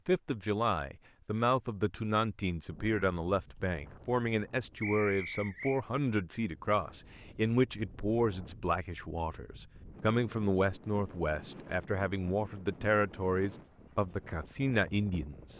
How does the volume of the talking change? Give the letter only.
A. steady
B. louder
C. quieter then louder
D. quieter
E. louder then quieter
A.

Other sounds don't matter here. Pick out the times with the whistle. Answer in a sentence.
You can hear the whistle from 4.8 to 5.8 s.